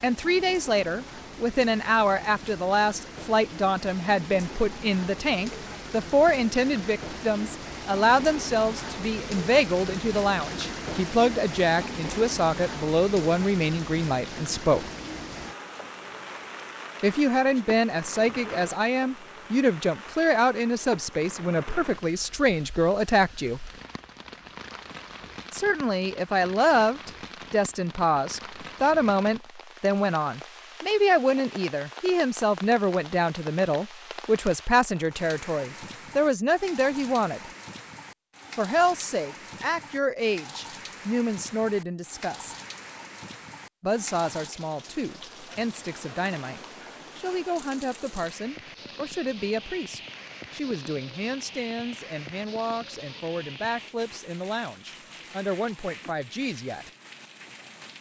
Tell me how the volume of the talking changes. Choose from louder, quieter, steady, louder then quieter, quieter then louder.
quieter.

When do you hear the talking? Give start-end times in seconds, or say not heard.
0.0-14.9, 17.0-23.6, 25.5-37.5, 38.5-42.5, 43.8-56.9.